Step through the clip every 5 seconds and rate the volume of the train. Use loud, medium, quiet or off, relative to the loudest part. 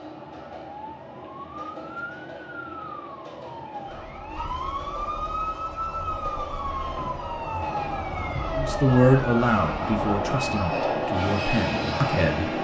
quiet, medium, loud.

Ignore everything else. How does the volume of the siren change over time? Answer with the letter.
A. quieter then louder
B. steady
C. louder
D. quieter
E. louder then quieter
C.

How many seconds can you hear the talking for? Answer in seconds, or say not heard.
4 s.